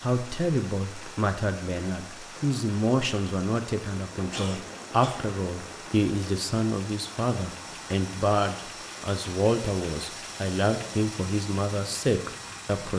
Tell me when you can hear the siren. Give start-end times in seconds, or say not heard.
not heard.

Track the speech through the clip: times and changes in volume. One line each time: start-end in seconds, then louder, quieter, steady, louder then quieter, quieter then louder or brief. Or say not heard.
0.0-12.9 steady.